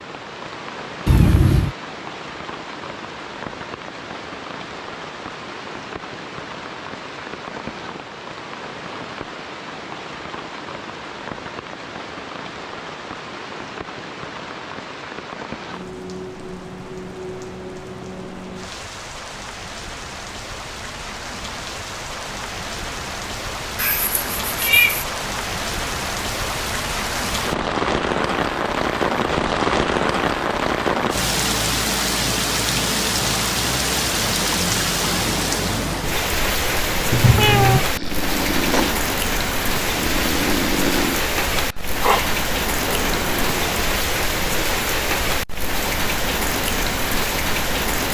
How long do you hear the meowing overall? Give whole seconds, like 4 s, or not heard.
3 s.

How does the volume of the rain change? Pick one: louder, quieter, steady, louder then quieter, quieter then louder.
louder.